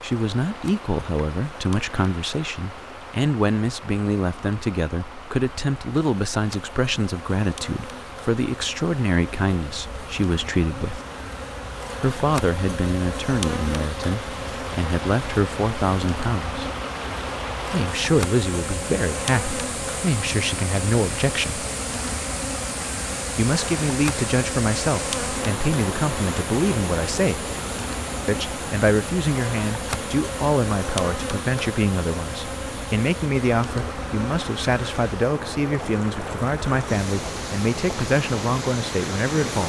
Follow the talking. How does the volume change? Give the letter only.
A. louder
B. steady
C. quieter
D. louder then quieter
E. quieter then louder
B.